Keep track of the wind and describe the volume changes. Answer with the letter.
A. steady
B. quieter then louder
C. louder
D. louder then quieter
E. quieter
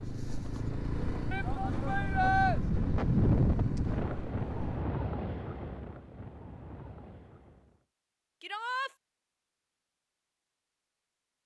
D.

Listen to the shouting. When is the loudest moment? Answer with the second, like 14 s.
2 s.